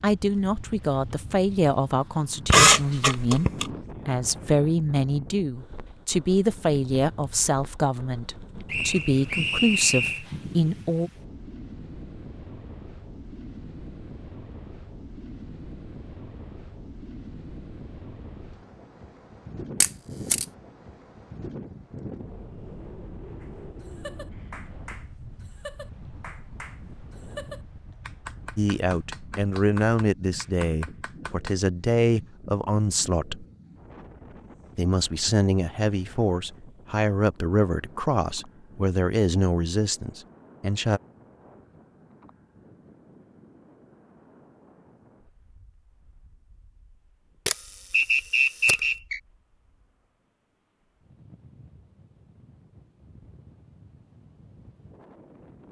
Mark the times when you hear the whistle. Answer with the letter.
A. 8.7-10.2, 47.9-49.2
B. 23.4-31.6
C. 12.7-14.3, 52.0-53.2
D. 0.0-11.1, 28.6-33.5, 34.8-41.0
A.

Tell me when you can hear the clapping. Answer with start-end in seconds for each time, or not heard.
23.4-31.6.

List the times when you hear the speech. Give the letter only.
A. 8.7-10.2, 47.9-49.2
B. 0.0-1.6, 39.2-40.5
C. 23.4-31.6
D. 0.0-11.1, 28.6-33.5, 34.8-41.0
D.